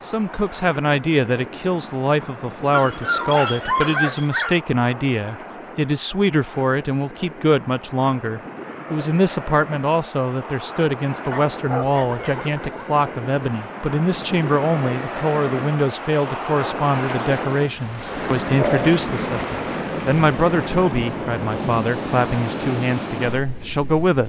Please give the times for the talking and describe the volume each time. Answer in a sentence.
The talking can be heard from 0.1 to 24.2 s, at a steady volume.